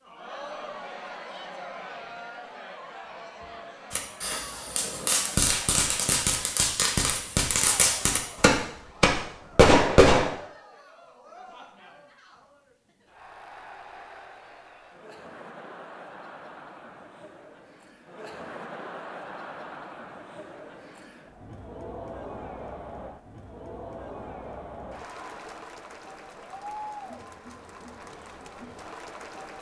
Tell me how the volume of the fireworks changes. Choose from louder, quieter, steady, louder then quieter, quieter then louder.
louder.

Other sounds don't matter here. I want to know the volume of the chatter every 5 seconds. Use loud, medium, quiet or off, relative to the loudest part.
loud, medium, medium, loud, loud, loud.